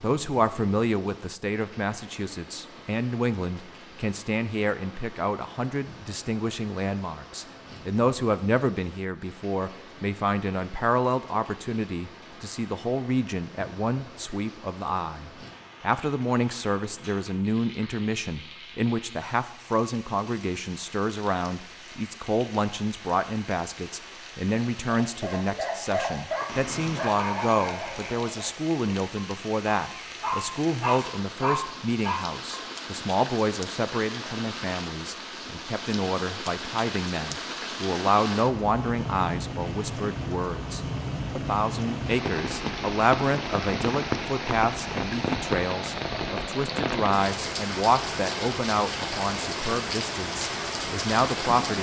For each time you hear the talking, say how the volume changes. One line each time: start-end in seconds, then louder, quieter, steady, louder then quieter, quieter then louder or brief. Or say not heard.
0.0-51.7 steady.